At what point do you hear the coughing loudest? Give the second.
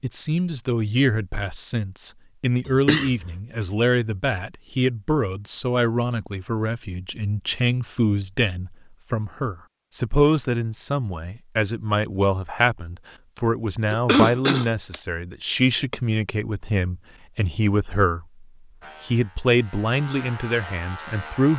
14 s.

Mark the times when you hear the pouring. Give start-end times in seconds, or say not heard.
not heard.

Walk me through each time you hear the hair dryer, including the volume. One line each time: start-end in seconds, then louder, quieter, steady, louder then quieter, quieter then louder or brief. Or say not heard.
not heard.